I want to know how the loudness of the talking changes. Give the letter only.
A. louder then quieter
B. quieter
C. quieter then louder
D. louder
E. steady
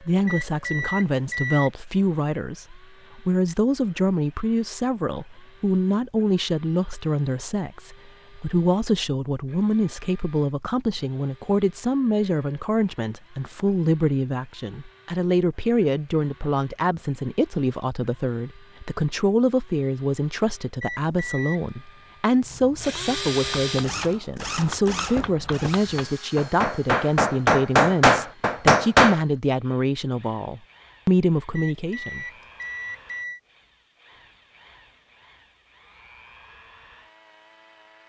E.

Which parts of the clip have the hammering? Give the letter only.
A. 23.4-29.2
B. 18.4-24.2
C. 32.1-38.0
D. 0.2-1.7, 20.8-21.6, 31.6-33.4
A.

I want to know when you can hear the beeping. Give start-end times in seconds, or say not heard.
0.2-1.7, 20.8-21.6, 31.6-33.4.